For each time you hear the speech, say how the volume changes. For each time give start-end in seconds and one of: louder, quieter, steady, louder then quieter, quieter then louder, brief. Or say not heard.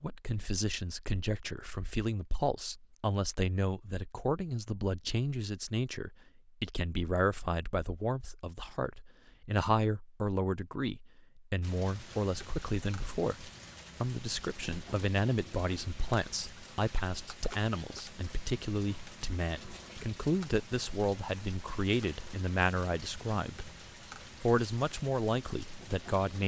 0.0-23.7 steady
24.4-26.4 brief.